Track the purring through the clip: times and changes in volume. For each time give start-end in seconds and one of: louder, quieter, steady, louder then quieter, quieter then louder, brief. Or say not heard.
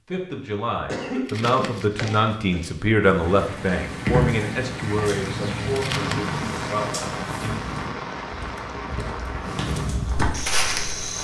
3.0-8.0 quieter
9.4-11.1 brief.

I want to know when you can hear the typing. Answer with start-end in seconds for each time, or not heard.
not heard.